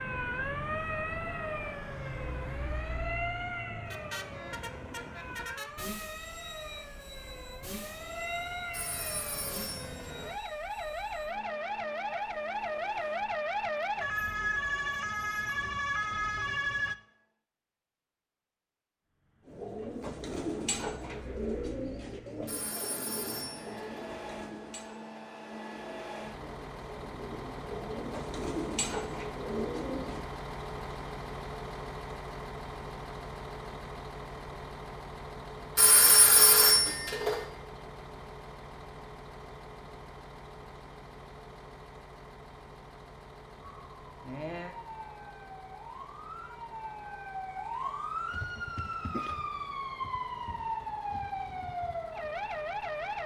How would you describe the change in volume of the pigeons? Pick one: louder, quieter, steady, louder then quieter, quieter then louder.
quieter then louder.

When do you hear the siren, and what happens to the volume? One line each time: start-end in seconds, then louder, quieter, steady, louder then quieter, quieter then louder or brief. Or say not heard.
0.0-16.9 quieter then louder
43.6-53.2 louder.